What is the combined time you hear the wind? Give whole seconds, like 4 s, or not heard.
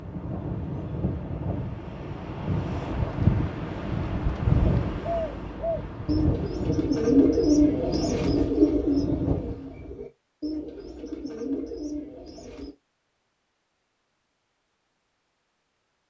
10 s.